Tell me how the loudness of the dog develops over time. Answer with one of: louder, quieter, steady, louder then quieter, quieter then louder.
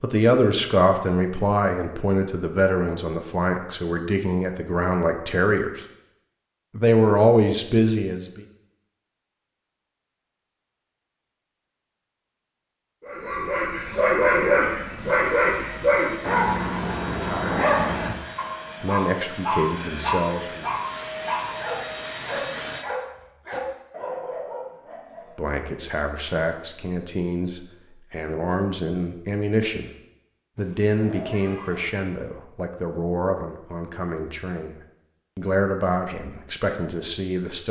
quieter.